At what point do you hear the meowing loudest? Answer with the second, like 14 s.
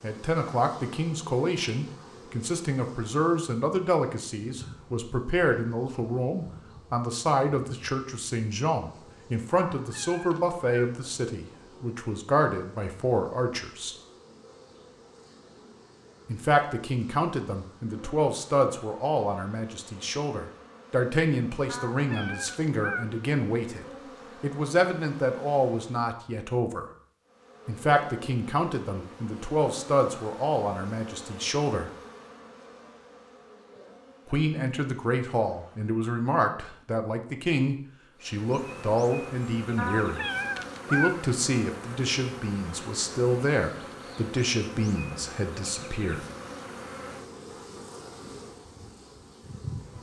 41 s.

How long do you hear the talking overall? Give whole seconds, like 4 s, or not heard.
40 s.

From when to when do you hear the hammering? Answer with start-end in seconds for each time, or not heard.
not heard.